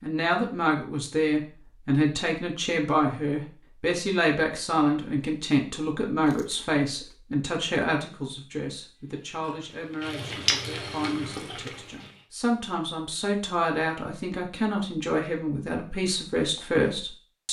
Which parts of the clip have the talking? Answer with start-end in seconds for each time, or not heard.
0.0-17.4.